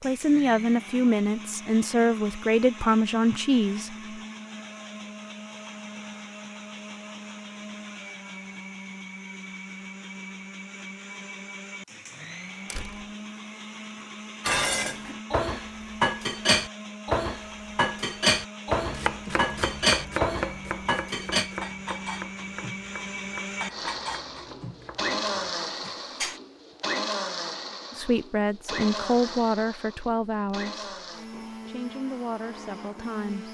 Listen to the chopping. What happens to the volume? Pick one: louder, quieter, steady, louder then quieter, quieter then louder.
quieter.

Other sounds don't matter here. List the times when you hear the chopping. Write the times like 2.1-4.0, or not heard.
18.8-25.5.